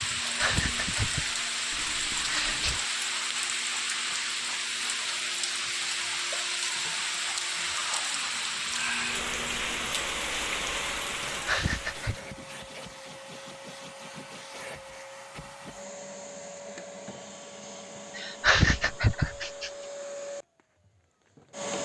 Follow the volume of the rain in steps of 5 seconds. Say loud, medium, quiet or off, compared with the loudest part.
loud, loud, loud, off, off.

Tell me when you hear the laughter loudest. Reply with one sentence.
The volume of the laughter peaks at 19 seconds.